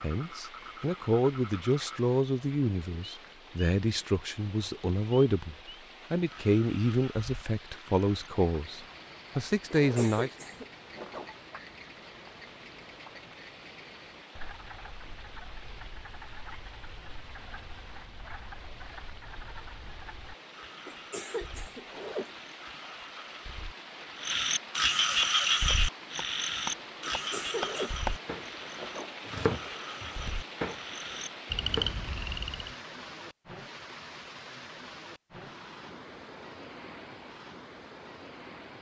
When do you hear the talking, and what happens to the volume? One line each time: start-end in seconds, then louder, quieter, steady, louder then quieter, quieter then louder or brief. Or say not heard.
0.0-10.3 steady.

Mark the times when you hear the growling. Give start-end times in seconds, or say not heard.
not heard.